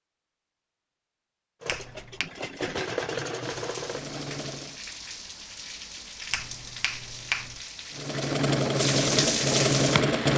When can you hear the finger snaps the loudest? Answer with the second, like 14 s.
7 s.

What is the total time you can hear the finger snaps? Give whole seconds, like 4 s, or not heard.
2 s.